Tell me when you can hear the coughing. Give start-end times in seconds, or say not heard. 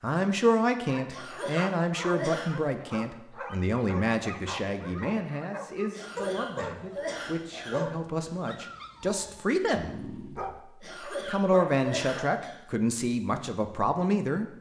1.1-2.5, 5.9-7.8, 10.8-12.6.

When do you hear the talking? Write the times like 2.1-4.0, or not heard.
0.0-9.9, 11.1-14.5.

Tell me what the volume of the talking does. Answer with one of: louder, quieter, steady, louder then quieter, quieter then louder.
quieter then louder.